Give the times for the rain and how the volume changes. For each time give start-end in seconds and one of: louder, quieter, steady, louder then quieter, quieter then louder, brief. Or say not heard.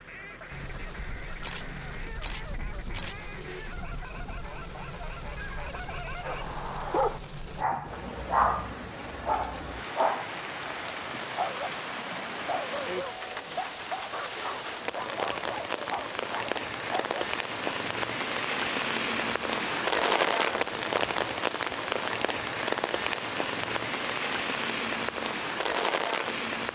0.0-26.6 louder.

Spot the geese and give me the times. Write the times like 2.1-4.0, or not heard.
0.1-6.5.